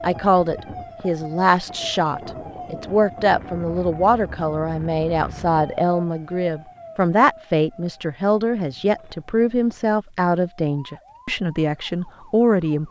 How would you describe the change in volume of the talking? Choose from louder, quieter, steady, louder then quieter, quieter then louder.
steady.